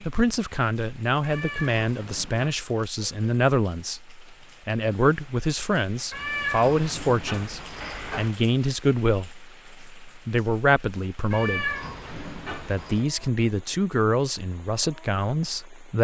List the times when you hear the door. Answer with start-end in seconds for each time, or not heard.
not heard.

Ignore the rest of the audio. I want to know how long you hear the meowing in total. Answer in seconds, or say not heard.
5 s.